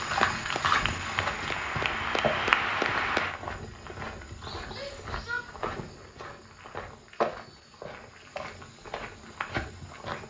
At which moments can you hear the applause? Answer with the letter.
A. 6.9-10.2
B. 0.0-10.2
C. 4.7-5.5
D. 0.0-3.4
D.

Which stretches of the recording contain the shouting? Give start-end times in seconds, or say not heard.
4.7-5.5.